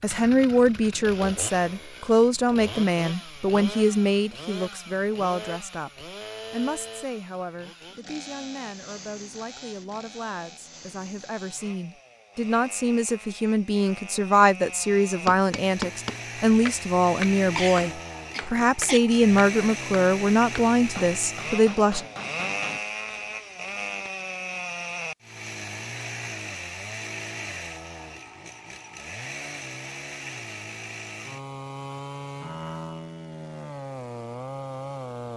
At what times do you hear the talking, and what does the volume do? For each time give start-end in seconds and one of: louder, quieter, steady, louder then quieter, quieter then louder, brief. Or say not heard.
0.0-22.1 quieter then louder.